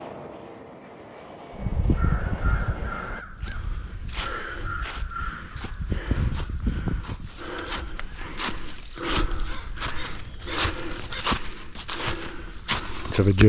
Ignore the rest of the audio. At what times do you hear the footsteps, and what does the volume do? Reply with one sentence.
You can hear the footsteps from 3.4 to 13.4 s, getting louder.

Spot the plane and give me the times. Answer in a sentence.
The plane can be heard from 0.0 to 3.2 s.